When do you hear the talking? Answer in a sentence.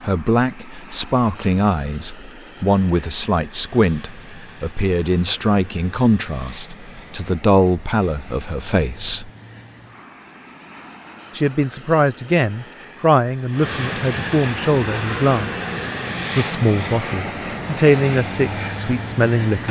The talking can be heard from 0.0 to 9.3 s, from 11.3 to 15.5 s and from 16.4 to 19.6 s.